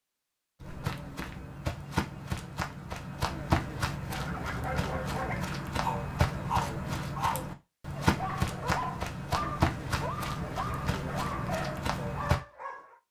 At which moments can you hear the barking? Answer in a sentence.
The barking can be heard from 4.0 to 12.9 s.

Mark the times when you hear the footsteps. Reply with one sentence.
You can hear the footsteps from 0.6 to 12.4 s.